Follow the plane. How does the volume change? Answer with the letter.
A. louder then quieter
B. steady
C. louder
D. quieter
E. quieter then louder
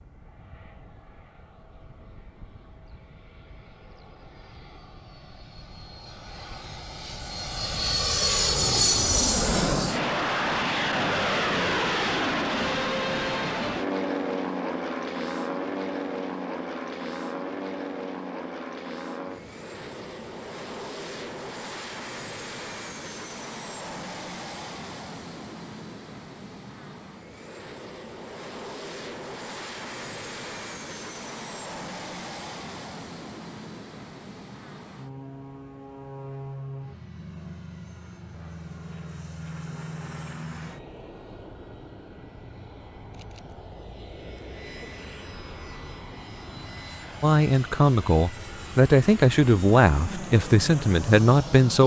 D.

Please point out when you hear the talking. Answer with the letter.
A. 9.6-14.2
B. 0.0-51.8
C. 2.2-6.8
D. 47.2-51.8
D.